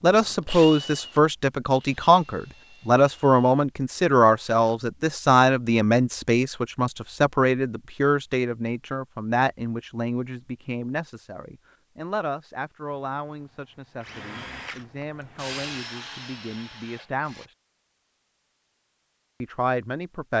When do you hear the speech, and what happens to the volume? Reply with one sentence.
The speech can be heard from 0.0 to 17.6 s, getting quieter; and briefly from 19.4 to 20.3 s.